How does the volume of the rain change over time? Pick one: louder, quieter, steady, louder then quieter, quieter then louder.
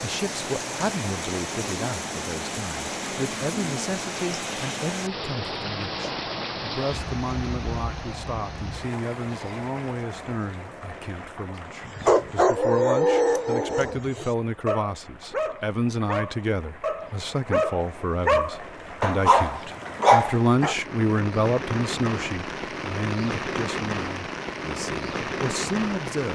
quieter then louder.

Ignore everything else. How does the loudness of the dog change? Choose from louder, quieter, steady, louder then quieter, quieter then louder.
quieter then louder.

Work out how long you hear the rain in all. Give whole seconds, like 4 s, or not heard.
26 s.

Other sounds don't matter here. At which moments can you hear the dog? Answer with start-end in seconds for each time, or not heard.
11.8-20.8.